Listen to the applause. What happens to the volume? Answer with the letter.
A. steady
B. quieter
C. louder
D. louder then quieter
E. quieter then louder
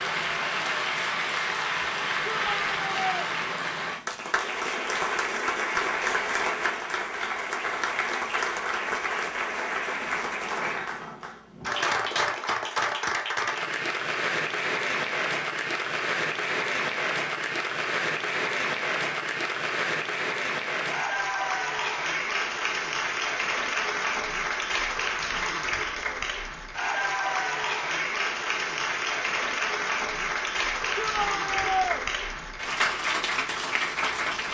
A.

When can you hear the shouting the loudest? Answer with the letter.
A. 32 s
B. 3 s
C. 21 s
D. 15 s
A.